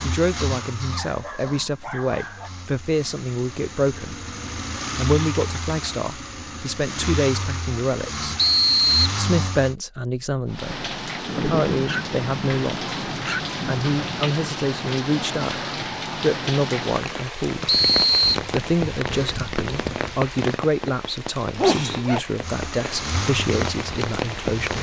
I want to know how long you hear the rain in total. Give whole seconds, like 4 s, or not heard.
14 s.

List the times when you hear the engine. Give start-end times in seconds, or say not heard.
0.0-9.8, 22.4-24.7.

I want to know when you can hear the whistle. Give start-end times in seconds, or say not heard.
8.3-9.0, 17.6-18.4.